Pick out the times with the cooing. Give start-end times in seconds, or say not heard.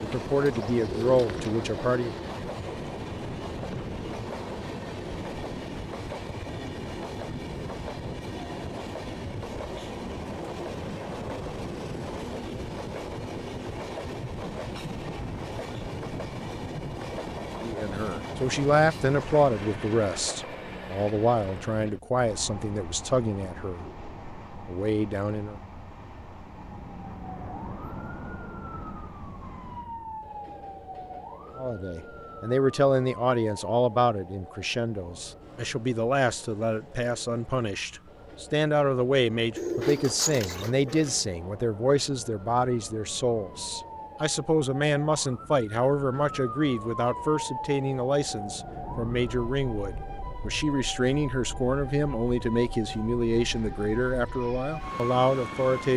0.1-1.6, 39.5-41.2.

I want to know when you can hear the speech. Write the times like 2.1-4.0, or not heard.
0.0-2.1, 17.6-23.9, 24.6-25.6, 31.6-55.9.